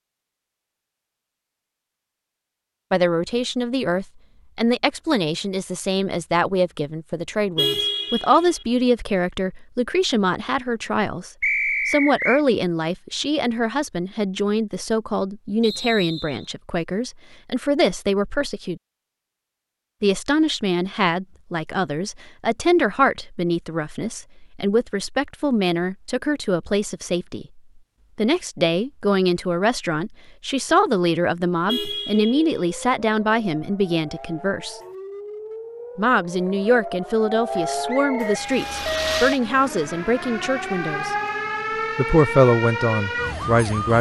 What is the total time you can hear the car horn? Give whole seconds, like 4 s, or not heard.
2 s.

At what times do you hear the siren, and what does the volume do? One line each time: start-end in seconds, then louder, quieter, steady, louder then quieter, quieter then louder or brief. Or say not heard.
32.1-43.9 louder.